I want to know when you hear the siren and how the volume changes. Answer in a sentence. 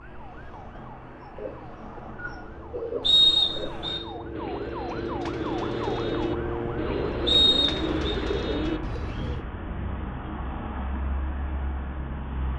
The siren can be heard from 0.0 to 7.5 s, getting louder.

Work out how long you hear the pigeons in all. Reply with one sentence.
The pigeons can be heard for 8 seconds in total.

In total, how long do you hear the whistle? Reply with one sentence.
The whistle can be heard for 2 seconds in total.